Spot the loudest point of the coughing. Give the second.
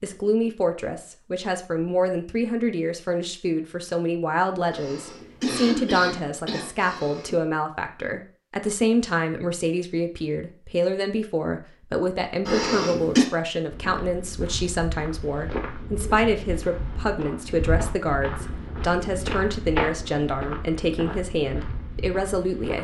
13 s.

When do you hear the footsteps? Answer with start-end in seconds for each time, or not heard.
13.7-22.7.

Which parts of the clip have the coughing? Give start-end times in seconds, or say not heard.
4.7-7.3, 12.4-13.2.